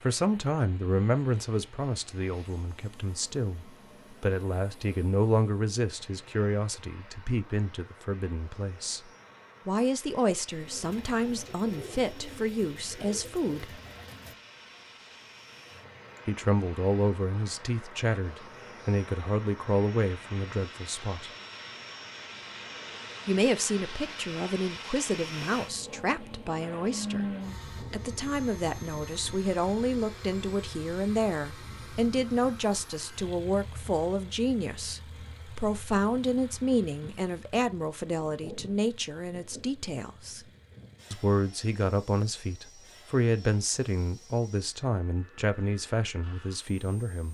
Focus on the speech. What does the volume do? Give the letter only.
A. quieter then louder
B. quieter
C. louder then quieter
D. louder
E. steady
E.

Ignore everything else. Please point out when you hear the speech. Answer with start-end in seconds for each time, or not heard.
0.0-9.0, 9.7-13.8, 16.2-21.3, 23.2-27.2, 27.9-40.4, 41.1-47.2.